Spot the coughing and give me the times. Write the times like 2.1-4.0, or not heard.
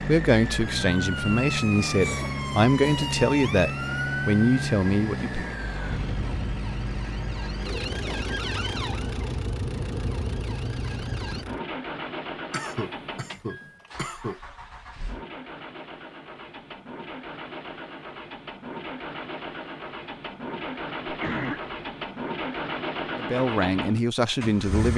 2.0-3.2, 12.5-14.4, 21.1-21.8.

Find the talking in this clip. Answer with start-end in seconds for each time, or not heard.
0.0-5.5, 23.1-24.9.